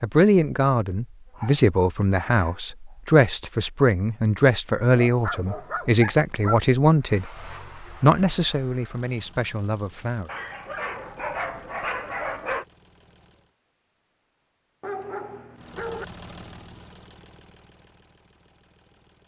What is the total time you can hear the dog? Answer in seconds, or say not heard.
7 s.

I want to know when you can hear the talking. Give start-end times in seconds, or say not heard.
0.0-7.3, 8.0-10.3.